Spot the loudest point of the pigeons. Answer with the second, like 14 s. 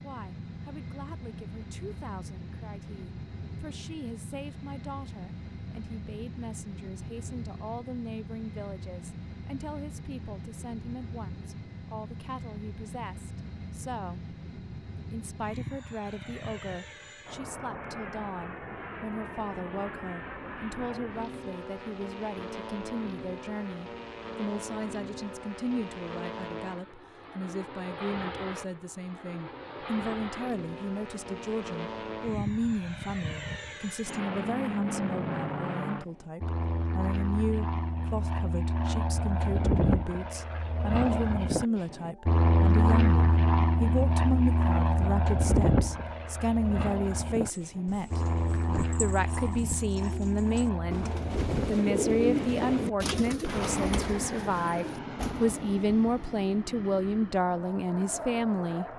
52 s.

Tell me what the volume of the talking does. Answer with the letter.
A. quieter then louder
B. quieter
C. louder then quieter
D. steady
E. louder
E.